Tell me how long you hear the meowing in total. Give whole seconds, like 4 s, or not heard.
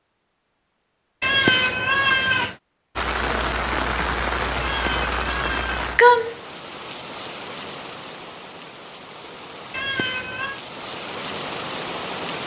4 s.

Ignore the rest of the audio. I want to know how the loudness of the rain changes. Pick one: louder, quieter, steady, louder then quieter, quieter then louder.
quieter then louder.